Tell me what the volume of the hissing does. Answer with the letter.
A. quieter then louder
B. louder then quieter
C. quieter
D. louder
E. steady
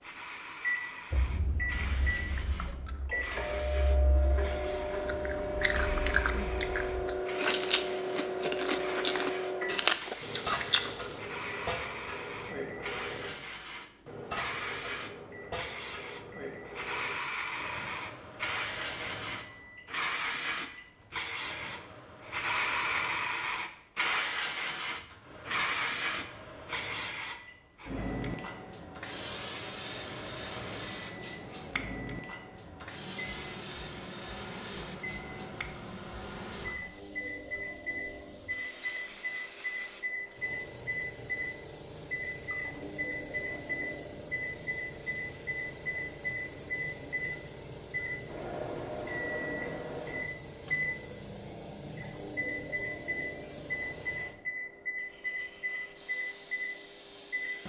B.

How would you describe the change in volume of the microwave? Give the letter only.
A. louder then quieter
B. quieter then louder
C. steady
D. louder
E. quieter
B.